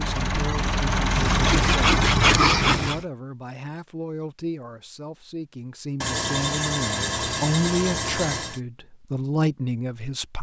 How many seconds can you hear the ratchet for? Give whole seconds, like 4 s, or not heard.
not heard.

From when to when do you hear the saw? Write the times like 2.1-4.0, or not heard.
1.1-3.0, 6.0-8.6.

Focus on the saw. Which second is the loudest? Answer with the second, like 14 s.
2 s.